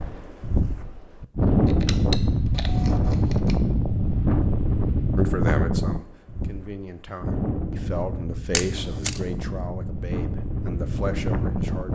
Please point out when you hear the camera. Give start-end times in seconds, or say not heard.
1.6-3.5, 8.5-9.2.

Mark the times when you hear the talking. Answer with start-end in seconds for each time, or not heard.
5.2-11.9.